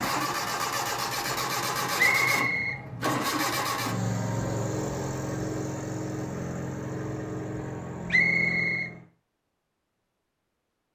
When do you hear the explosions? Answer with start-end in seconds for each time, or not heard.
not heard.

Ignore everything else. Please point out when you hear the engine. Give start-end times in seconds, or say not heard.
0.0-9.1.